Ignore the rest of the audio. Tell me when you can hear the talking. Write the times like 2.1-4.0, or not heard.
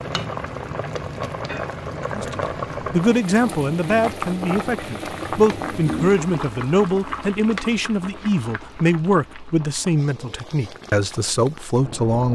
2.1-12.3.